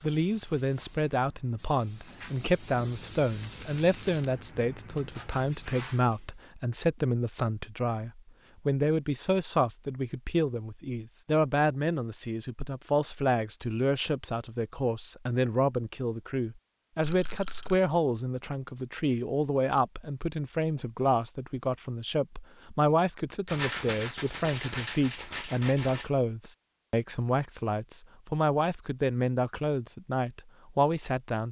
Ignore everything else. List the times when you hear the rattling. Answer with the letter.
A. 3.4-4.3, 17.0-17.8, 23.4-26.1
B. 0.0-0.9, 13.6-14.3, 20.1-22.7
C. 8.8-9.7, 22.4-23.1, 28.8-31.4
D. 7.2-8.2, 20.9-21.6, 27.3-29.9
A.